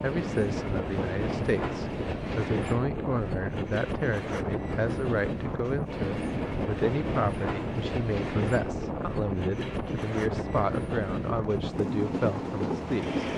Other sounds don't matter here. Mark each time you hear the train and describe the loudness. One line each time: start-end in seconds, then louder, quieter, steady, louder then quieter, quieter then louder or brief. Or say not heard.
0.0-13.3 steady.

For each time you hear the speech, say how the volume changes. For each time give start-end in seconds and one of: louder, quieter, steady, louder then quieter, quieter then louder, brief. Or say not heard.
0.0-13.2 steady.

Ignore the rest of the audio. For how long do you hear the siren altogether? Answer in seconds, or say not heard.
not heard.